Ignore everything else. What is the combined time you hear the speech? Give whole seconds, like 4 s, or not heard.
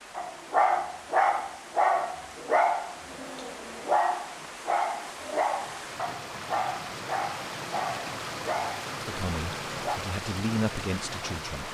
3 s.